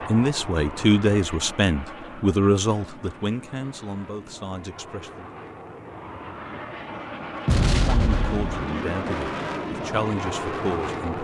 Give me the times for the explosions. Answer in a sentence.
You can hear the explosions from 7.5 to 8.7 s.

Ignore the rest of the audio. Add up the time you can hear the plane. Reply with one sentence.
You can hear the plane for 11 seconds altogether.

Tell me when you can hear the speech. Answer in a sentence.
You can hear the speech from 0.1 to 5.2 s and from 7.7 to 11.1 s.